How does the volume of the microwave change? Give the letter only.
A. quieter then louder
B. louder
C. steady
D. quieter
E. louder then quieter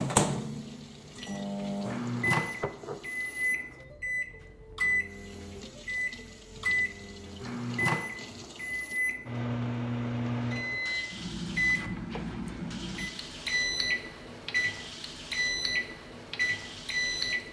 C.